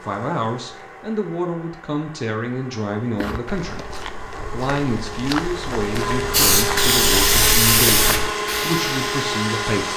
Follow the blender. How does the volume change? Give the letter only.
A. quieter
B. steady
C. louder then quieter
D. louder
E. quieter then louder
D.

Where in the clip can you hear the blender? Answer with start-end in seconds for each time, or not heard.
0.0-9.9.